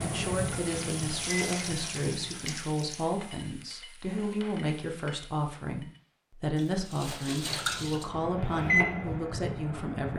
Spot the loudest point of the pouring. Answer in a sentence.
The loudest moment of the pouring is at 8 seconds.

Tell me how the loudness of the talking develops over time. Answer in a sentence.
The volume of the talking stays about the same.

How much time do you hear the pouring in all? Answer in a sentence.
You can hear the pouring for 4 seconds altogether.